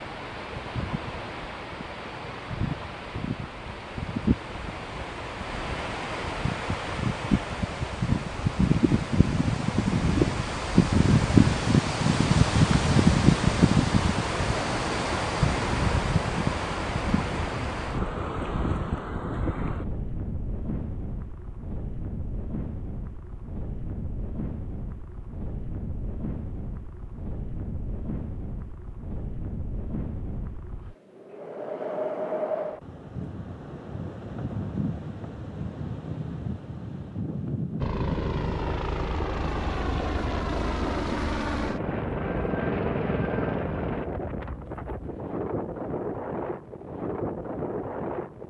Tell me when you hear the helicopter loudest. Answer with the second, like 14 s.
43 s.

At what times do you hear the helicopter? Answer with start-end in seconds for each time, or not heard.
37.8-44.1.